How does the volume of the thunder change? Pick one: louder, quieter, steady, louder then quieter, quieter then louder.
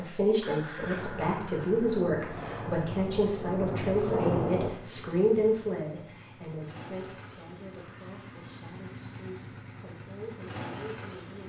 louder.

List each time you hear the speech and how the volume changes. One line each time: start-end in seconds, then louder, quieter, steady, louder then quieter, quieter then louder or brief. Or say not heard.
0.0-11.4 quieter.